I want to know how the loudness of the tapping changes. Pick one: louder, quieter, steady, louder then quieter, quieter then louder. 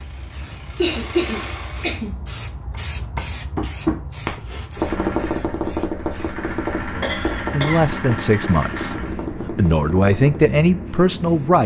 quieter.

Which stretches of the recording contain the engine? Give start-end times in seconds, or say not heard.
0.0-2.0, 4.7-9.2.